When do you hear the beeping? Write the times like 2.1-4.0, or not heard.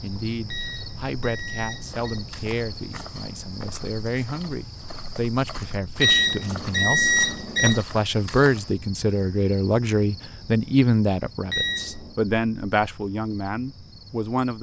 0.5-2.2, 6.0-7.8, 11.5-12.2.